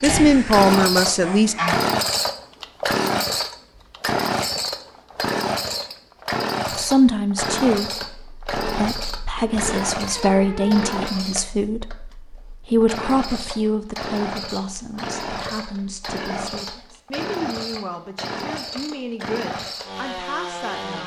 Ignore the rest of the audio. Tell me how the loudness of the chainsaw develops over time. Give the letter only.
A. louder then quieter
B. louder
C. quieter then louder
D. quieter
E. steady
D.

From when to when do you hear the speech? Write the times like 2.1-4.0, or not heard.
0.0-1.6, 6.7-21.0.